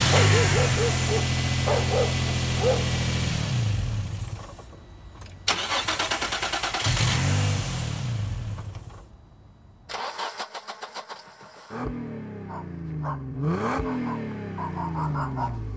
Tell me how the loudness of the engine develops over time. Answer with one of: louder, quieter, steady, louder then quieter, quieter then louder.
quieter then louder.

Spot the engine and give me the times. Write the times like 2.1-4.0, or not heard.
0.0-15.7.